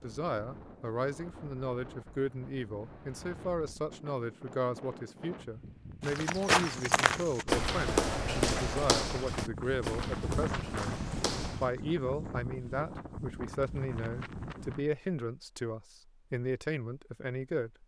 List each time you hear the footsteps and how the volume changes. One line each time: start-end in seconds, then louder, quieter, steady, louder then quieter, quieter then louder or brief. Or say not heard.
6.0-11.7 quieter.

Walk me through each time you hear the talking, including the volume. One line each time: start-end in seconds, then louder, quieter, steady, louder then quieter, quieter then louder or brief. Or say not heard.
0.0-17.8 steady.